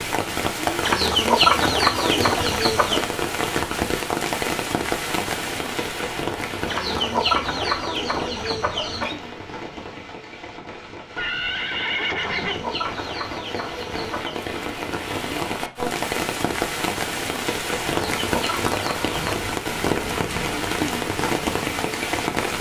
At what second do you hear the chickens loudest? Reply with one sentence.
The volume of the chickens peaks at 1 second.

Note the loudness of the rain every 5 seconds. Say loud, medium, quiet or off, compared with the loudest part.
loud, medium, medium, loud, loud.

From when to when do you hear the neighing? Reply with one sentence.
You can hear the neighing from 11.2 to 12.7 s.